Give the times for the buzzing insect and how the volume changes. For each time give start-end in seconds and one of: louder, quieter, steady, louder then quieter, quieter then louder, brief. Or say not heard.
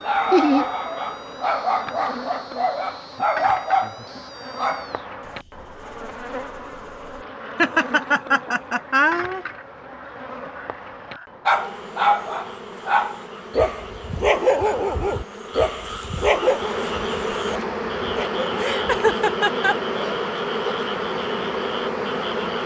0.0-22.6 louder.